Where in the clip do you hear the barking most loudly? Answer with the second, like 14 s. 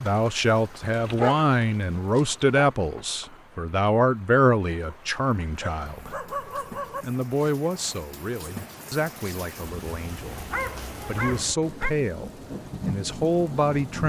1 s.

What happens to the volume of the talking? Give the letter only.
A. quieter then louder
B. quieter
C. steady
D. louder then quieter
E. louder
A.